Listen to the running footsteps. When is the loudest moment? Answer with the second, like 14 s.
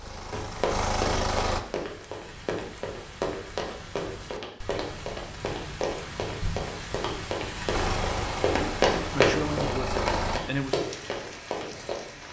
9 s.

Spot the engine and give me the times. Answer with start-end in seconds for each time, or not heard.
0.0-1.6, 7.7-10.4.